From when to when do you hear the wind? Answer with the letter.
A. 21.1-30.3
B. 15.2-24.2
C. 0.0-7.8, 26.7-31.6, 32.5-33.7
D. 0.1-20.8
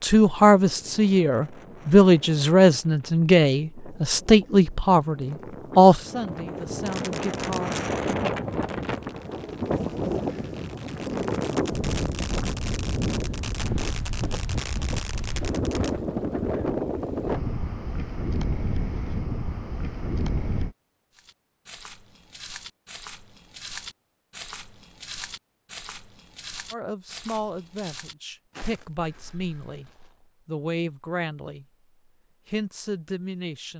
D.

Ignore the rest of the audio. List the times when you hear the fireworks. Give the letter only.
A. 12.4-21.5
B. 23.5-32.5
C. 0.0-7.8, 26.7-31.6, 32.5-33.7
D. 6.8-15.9
D.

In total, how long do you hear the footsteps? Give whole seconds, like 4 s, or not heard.
9 s.